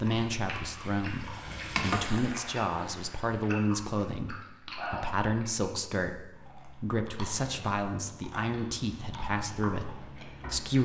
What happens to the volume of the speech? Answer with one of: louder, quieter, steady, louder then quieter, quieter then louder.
steady.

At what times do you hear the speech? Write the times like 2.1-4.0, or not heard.
0.0-10.8.